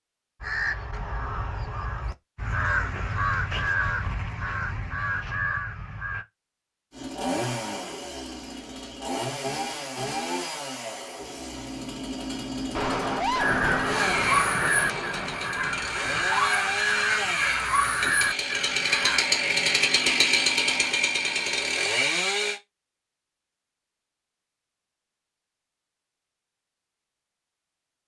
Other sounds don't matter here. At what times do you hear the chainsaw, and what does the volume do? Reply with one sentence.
You can hear the chainsaw from 6.9 to 22.6 s, getting louder.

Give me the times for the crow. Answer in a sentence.
You can hear the crow from 0.4 to 6.2 s and from 13.3 to 19.2 s.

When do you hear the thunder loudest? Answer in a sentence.
The loudest moment of the thunder is at 13 seconds.